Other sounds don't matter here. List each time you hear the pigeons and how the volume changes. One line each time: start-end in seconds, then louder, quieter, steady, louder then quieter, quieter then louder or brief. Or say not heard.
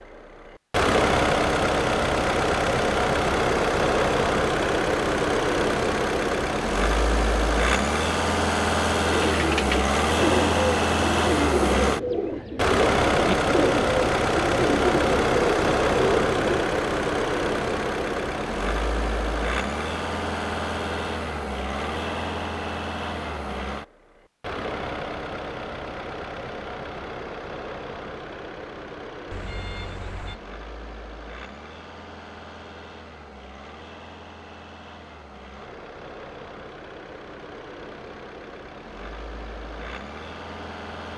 9.1-16.6 steady.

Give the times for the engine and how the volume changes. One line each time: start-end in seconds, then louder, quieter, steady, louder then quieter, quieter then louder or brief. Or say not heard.
0.0-41.1 quieter.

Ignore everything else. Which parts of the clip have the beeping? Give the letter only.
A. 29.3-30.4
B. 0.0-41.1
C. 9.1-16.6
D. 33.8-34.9
A.